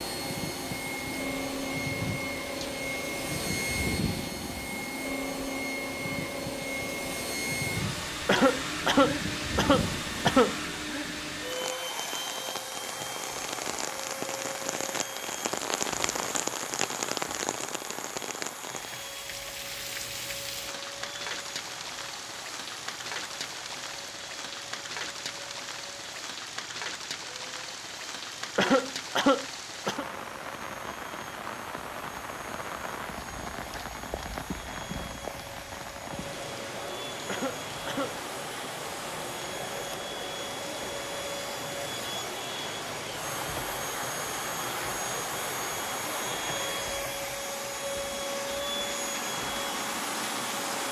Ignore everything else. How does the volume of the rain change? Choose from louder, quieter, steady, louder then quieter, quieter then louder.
steady.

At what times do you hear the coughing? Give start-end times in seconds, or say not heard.
8.2-10.6, 28.6-30.1, 37.2-38.2.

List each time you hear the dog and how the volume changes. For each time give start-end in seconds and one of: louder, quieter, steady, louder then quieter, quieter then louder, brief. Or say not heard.
not heard.